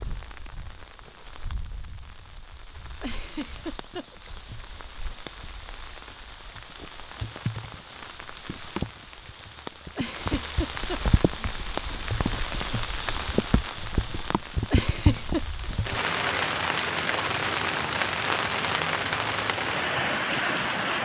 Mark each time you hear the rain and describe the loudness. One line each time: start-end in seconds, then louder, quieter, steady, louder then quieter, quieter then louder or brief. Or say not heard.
0.0-21.0 louder.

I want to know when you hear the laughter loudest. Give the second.
15 s.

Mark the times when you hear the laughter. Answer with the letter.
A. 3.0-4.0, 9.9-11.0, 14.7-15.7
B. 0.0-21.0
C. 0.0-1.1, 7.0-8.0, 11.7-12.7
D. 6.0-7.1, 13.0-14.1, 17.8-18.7
A.